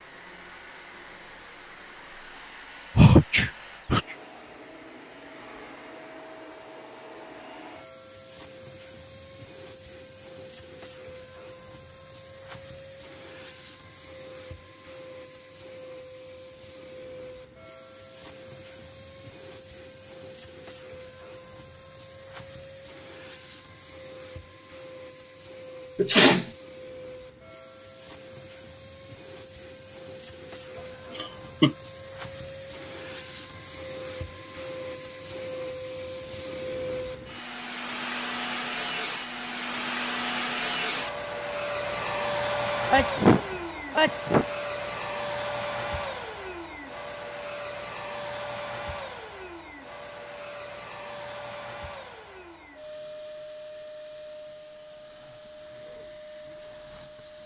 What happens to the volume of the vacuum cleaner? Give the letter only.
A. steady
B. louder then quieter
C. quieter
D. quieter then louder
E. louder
B.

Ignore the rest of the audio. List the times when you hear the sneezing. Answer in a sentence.
The sneezing can be heard from 3.0 to 4.2 s, from 25.9 to 26.4 s and from 42.9 to 44.5 s.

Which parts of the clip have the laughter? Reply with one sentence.
The laughter can be heard from 30.8 to 31.8 s.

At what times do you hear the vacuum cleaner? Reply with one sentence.
You can hear the vacuum cleaner from 0.0 to 57.4 s.